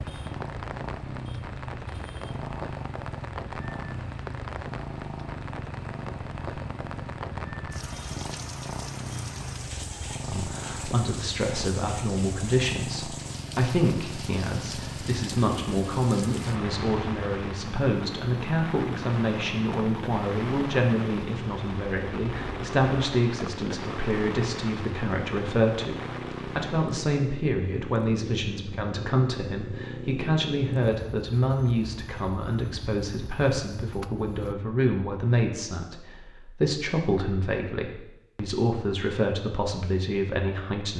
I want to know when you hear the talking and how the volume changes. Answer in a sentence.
You can hear the talking from 10.2 to 40.9 s, at a steady volume.